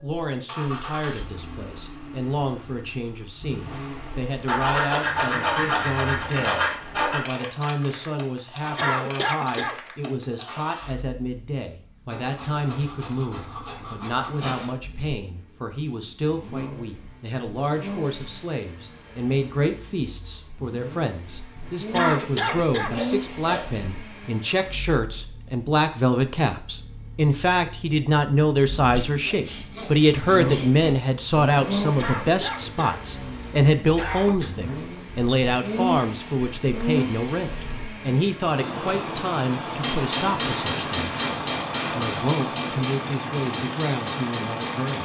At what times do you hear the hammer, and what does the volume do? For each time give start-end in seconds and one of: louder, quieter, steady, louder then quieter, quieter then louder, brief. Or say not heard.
39.8-45.0 quieter.